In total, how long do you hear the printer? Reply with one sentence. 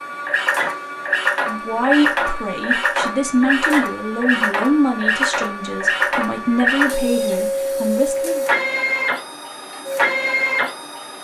You can hear the printer for 11 seconds altogether.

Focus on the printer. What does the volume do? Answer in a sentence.
The loudness of the printer stays about the same.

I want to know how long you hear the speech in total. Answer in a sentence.
The speech can be heard for 7 seconds in total.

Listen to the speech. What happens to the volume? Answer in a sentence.
The volume of the speech stays about the same.